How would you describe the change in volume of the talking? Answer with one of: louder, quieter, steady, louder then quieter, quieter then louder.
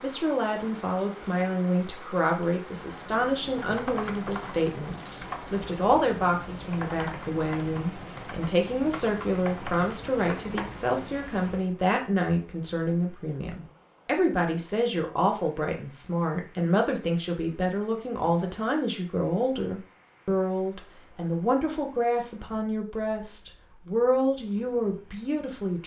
steady.